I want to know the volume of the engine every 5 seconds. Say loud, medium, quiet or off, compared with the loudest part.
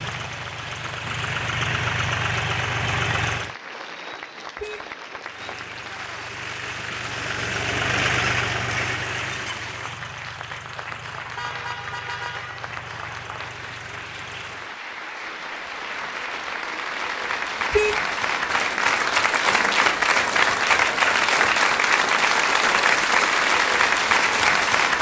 loud, loud, quiet, off, off.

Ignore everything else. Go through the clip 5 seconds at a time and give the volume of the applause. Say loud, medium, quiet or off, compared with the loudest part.
quiet, quiet, quiet, medium, loud.